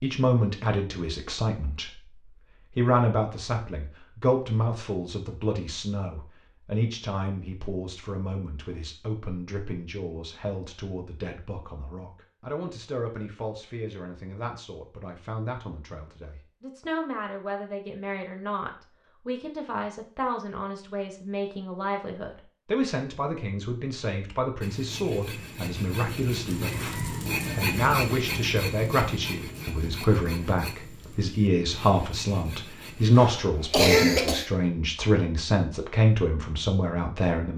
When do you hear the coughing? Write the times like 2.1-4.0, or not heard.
33.1-34.5.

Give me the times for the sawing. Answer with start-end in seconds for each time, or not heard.
24.6-33.2.